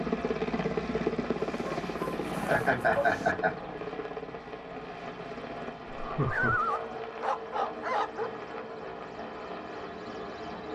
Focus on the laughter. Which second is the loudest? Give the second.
3 s.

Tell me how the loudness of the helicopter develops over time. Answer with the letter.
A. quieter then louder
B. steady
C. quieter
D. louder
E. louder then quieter
C.